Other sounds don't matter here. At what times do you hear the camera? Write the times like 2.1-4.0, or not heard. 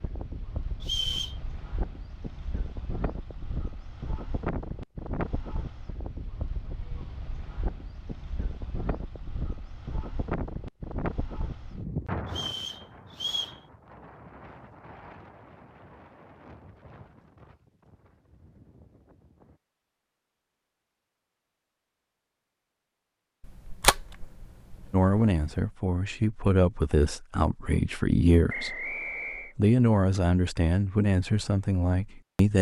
23.4-25.8.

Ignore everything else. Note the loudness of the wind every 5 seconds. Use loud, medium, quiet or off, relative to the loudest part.
loud, loud, loud, quiet, off, off, off.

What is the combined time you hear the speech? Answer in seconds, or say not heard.
7 s.